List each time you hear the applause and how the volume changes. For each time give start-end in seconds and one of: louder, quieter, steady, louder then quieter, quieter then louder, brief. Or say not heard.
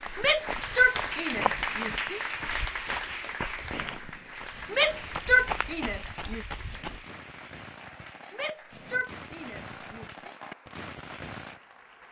0.0-12.0 quieter.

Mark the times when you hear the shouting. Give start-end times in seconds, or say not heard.
0.1-2.2, 4.7-6.5, 8.3-10.3.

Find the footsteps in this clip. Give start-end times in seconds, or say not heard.
0.0-7.0.